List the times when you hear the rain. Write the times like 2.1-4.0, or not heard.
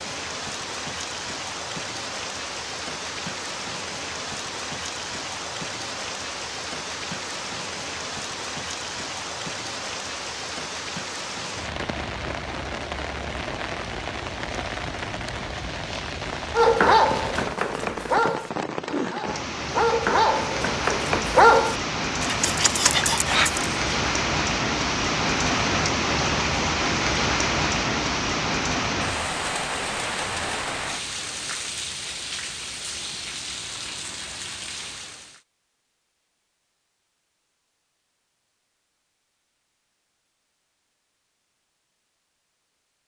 0.0-35.4.